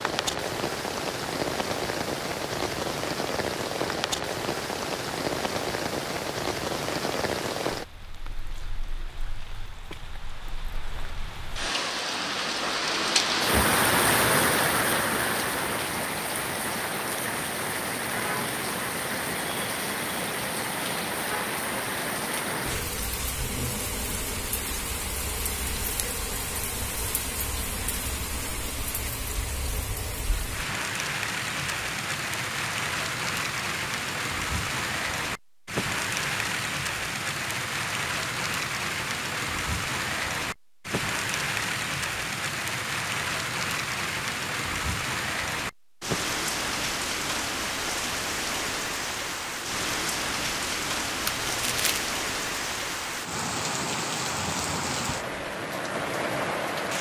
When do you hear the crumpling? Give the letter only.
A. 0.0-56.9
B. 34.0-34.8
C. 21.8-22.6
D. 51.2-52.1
D.